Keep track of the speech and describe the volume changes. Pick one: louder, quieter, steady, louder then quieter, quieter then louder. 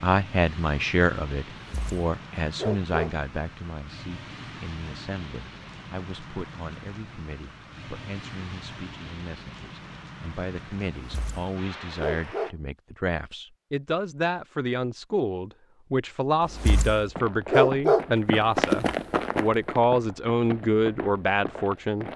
quieter then louder.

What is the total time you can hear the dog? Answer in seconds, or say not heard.
5 s.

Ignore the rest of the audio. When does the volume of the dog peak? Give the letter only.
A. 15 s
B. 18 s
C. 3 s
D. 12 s
B.